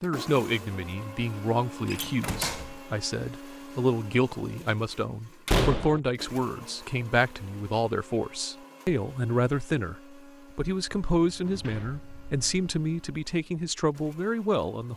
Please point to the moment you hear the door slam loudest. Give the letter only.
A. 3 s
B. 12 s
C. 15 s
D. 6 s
D.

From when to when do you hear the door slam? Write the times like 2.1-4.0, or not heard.
1.9-2.7, 5.5-6.0, 11.2-12.4.